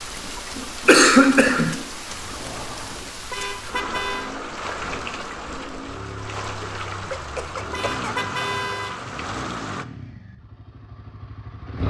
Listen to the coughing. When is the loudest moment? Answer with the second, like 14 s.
1 s.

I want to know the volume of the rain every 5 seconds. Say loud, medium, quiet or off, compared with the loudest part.
loud, loud, off.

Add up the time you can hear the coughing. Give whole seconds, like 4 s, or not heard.
2 s.